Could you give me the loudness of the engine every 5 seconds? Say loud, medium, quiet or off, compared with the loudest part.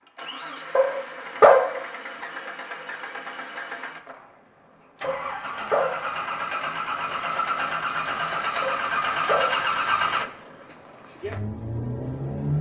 medium, loud, loud.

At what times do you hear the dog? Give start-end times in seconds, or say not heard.
0.8-1.8, 5.0-6.1, 8.6-9.7.